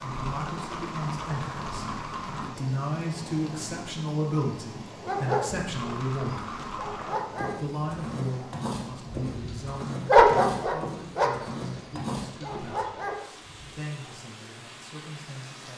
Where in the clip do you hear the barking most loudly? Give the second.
10 s.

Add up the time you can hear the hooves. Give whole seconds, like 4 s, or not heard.
10 s.